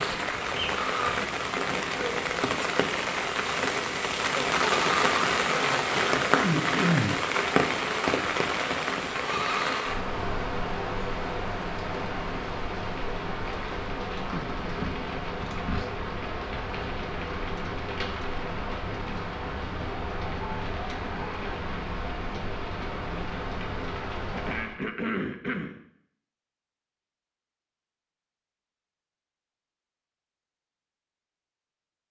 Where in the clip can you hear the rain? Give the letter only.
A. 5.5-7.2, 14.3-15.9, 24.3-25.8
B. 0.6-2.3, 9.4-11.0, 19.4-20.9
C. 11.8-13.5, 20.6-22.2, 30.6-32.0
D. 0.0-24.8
D.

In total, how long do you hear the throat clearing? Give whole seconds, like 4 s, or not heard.
5 s.